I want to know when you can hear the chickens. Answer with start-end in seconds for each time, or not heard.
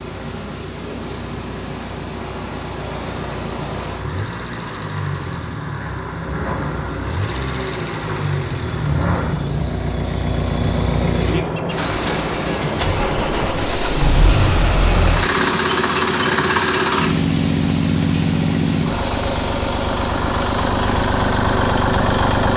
not heard.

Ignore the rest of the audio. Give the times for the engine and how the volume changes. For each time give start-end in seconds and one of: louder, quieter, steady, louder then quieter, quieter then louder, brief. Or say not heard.
0.0-22.5 louder.